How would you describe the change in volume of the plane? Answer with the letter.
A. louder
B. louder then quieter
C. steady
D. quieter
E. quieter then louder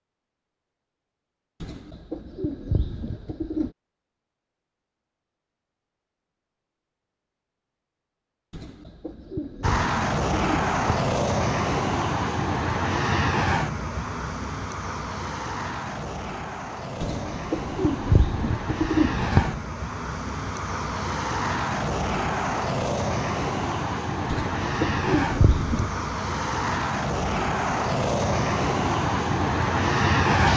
E.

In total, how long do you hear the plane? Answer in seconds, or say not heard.
21 s.